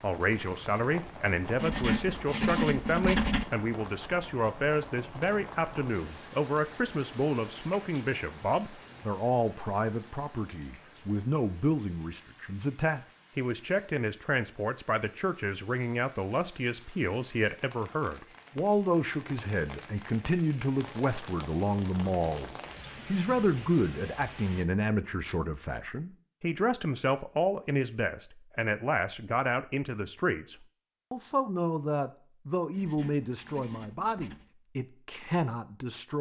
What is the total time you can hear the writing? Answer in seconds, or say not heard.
4 s.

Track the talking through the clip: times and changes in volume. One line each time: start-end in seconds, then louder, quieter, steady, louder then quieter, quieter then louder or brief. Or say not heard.
0.0-36.1 steady.